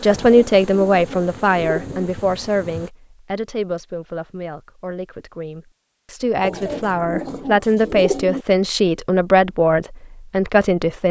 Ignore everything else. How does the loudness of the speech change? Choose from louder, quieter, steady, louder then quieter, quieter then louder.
quieter then louder.